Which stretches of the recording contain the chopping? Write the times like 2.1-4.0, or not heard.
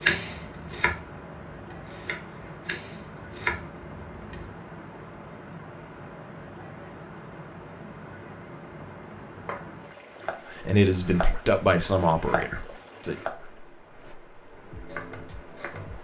0.0-4.5, 9.4-15.9.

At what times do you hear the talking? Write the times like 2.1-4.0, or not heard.
10.5-13.2.